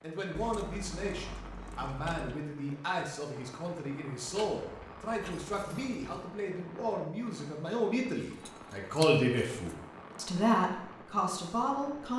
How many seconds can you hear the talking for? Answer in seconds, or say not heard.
12 s.